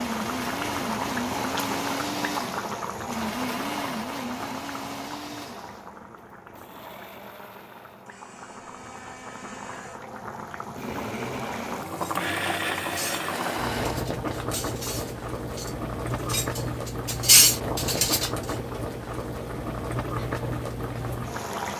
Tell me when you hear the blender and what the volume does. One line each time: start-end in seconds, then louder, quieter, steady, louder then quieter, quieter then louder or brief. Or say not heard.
0.0-14.1 quieter then louder.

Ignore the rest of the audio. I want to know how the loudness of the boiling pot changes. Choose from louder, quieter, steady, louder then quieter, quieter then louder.
quieter then louder.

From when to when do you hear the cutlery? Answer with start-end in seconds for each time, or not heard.
11.9-18.3.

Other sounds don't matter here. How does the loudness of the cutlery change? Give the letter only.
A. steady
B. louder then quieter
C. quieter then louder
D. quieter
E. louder
C.